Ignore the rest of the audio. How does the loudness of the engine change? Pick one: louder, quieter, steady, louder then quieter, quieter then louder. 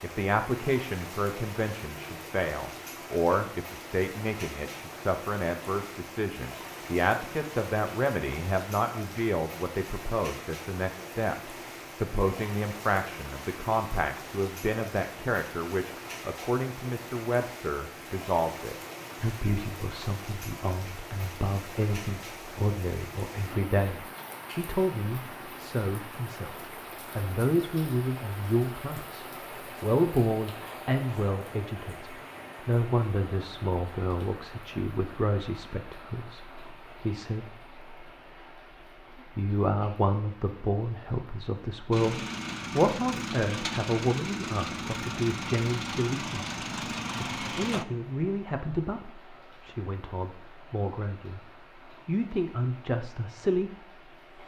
steady.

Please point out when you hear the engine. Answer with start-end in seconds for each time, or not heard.
41.9-47.9.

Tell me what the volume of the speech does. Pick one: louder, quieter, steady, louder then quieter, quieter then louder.
steady.